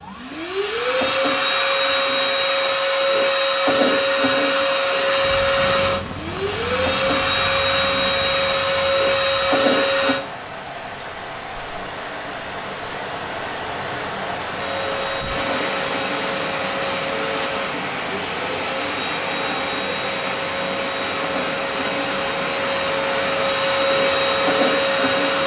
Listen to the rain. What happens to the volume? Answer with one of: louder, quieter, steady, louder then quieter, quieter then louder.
louder.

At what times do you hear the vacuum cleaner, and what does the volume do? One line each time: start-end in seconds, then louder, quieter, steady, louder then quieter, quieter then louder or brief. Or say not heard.
0.0-10.2 steady
14.5-25.4 louder.